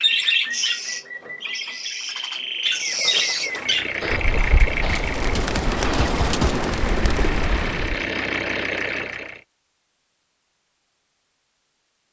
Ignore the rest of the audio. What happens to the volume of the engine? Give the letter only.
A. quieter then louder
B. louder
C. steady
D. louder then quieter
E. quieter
A.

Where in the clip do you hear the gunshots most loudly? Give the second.
6 s.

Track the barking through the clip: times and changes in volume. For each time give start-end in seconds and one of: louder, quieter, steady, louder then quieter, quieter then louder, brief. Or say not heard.
not heard.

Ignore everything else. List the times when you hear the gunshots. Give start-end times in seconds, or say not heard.
4.0-6.7.